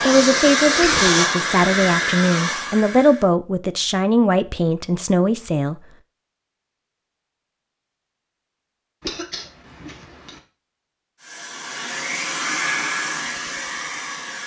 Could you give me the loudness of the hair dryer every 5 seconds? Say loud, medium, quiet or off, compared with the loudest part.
loud, off, medium.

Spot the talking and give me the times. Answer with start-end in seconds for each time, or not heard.
0.0-5.8.